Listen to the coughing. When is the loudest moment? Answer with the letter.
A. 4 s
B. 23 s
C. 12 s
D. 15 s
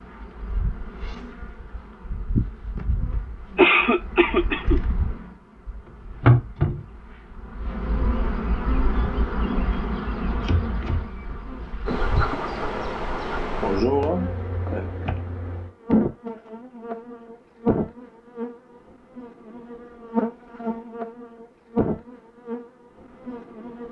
A.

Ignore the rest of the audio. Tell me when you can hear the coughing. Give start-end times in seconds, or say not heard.
3.5-4.8, 13.6-14.9.